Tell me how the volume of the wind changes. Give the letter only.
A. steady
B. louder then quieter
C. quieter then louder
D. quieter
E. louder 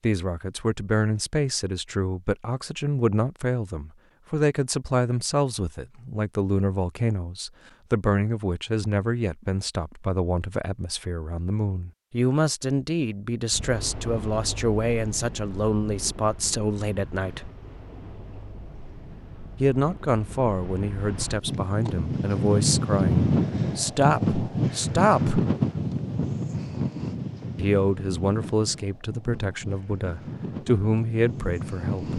B.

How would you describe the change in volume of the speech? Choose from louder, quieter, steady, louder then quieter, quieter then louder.
steady.